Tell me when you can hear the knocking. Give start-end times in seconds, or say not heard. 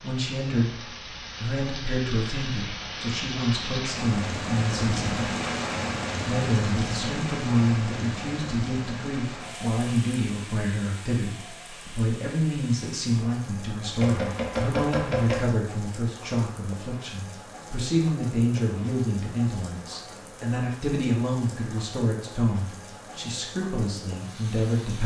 13.9-15.5.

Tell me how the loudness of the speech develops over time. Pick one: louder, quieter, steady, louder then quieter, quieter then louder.
steady.